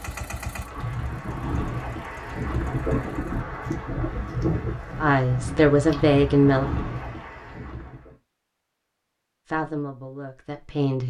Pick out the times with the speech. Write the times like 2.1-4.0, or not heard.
5.0-6.7, 9.5-11.0.